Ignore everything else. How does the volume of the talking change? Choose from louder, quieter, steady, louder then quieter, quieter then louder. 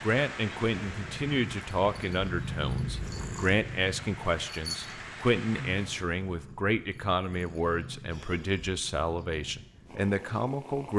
steady.